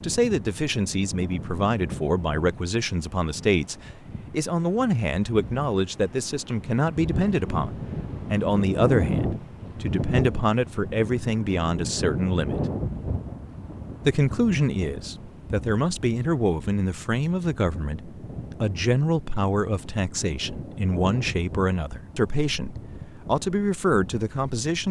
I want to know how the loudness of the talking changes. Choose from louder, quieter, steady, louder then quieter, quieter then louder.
steady.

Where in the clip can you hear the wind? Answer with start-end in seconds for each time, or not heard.
0.0-24.8.